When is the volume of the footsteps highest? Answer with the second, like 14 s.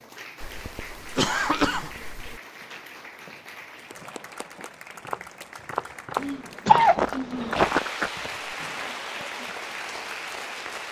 8 s.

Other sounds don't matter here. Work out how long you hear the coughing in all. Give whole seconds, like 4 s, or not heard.
3 s.